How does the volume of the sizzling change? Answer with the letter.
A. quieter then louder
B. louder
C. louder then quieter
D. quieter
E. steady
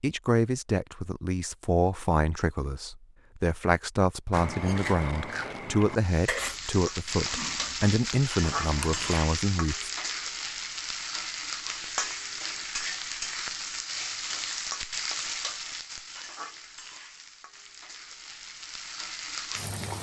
D.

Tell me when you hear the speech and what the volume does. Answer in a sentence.
The speech can be heard from 0.0 to 9.9 s, at a steady volume.